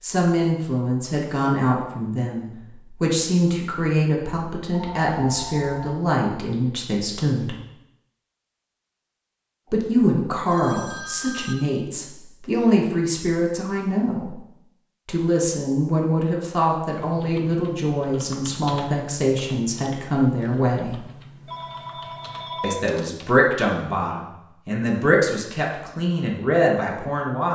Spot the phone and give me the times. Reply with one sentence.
The phone can be heard from 4.7 to 6.0 s, from 9.7 to 11.6 s and from 21.4 to 22.8 s.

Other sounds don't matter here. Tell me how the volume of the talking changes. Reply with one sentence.
The loudness of the talking stays about the same.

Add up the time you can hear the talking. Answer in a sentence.
You can hear the talking for 23 seconds altogether.